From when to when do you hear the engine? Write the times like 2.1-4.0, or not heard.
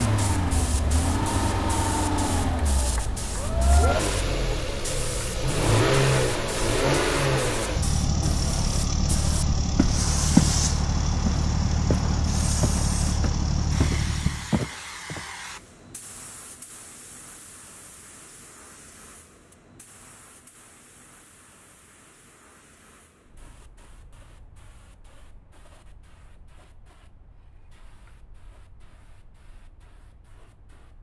0.0-14.6.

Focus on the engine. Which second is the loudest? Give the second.
6 s.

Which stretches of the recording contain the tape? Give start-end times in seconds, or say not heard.
not heard.